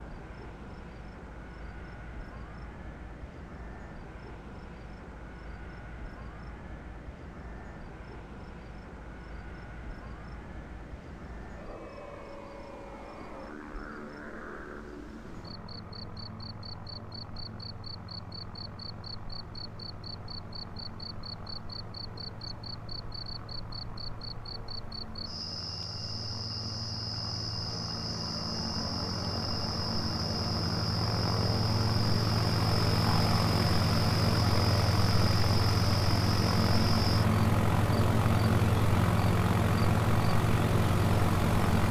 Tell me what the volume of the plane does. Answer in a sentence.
The loudness of the plane goes up.